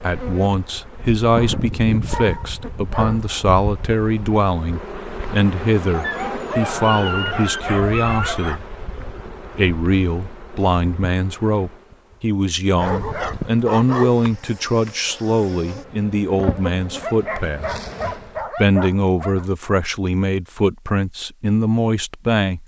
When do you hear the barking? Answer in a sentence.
You can hear the barking from 1.4 to 3.2 s, from 5.9 to 8.6 s, from 12.8 to 14.3 s and from 17.0 to 19.4 s.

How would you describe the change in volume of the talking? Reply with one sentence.
The loudness of the talking stays about the same.